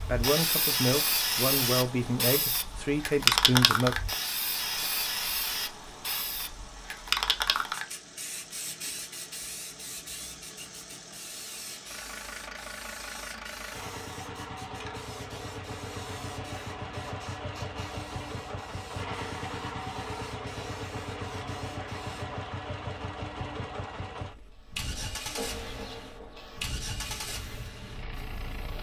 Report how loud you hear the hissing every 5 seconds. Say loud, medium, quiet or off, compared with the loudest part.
loud, medium, quiet, quiet, quiet, quiet.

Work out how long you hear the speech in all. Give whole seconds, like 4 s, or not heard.
4 s.